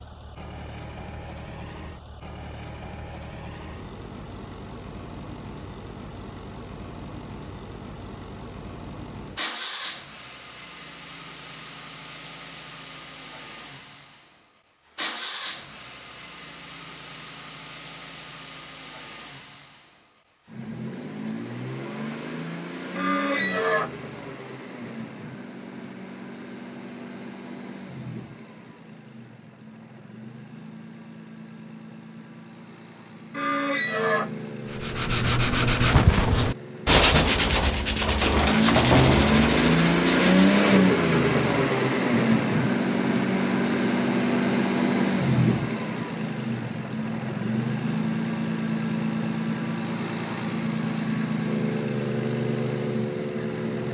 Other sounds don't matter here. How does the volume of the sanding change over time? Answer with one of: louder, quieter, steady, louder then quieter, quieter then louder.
quieter.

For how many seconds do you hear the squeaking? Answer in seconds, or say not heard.
2 s.